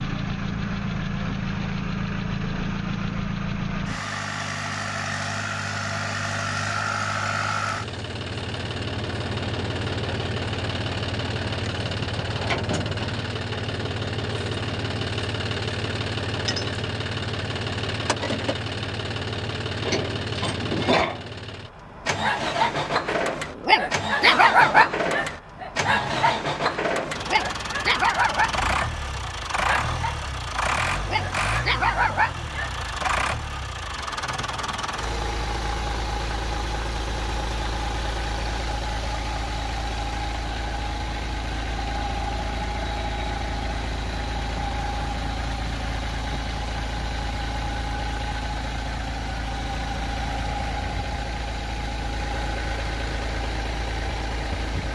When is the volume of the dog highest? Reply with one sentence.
The loudest moment of the dog is at 25 seconds.